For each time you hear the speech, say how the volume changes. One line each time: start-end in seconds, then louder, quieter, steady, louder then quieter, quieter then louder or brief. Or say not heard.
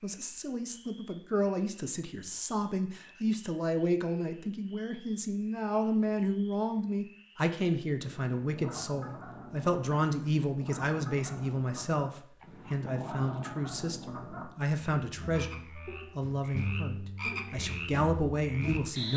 0.0-19.1 steady.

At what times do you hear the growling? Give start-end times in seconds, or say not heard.
12.4-13.6.